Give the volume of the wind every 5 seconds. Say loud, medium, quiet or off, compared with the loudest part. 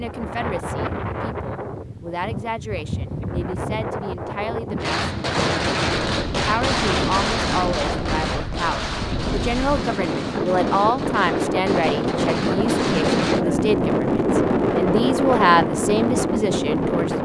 medium, medium, loud, loud.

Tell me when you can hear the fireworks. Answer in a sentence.
You can hear the fireworks from 4.8 to 13.4 s.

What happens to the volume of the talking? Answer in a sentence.
The loudness of the talking goes up.